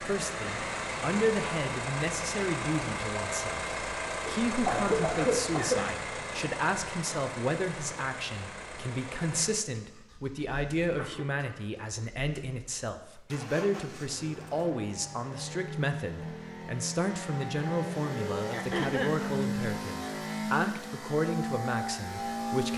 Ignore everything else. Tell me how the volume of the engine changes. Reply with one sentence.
The volume of the engine goes down, then up.